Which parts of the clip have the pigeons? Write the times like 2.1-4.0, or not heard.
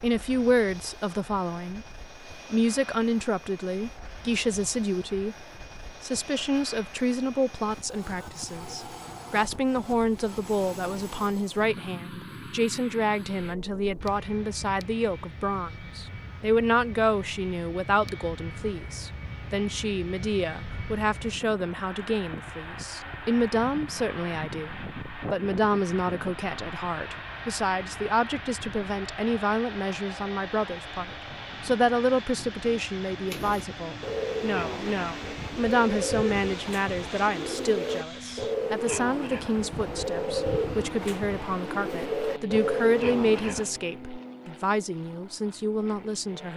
33.2-43.7.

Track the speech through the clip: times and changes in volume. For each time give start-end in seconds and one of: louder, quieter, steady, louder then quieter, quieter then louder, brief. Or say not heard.
0.0-46.5 steady.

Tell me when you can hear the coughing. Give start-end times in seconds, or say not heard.
not heard.